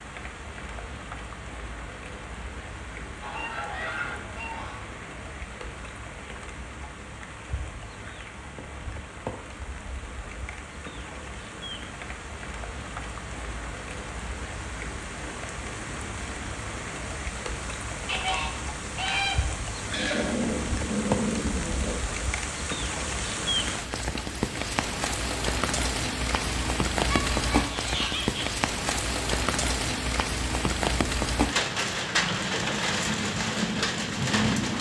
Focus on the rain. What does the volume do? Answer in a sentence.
The volume of the rain goes up.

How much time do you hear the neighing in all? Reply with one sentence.
The neighing can be heard for 2 seconds in total.